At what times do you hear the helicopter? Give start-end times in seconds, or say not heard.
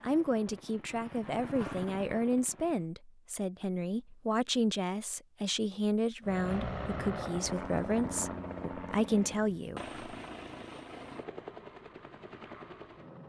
0.0-2.9, 6.2-13.2.